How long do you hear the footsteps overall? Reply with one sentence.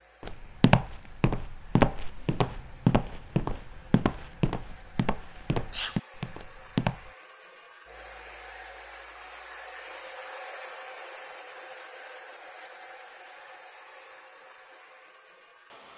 You can hear the footsteps for 7 seconds altogether.